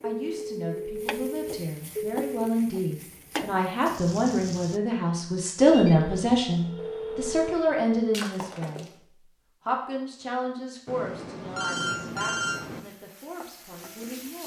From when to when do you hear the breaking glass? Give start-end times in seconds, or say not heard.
8.1-8.9.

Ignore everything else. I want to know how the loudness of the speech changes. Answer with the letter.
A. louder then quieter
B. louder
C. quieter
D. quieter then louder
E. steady
A.